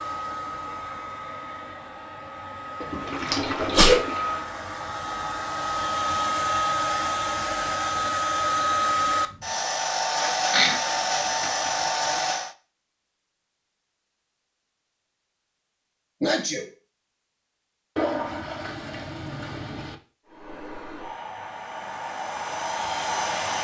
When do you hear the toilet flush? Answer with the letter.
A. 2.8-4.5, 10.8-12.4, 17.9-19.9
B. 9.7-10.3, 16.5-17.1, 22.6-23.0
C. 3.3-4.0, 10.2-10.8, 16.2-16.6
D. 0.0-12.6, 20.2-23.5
A.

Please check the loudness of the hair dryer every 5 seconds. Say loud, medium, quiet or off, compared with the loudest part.
medium, loud, loud, off, medium.